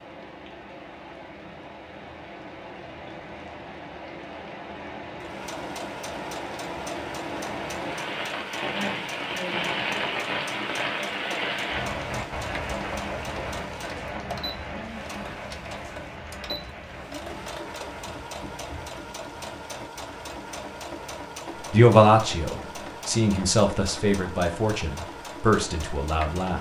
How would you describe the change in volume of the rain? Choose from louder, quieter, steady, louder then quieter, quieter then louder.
louder then quieter.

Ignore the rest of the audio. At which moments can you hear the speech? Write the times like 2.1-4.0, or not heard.
21.7-26.5.